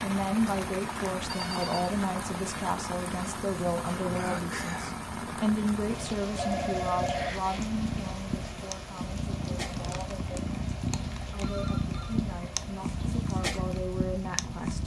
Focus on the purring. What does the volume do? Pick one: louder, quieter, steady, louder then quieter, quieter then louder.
louder.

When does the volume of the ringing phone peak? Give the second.
7 s.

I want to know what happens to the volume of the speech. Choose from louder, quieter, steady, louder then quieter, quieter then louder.
quieter.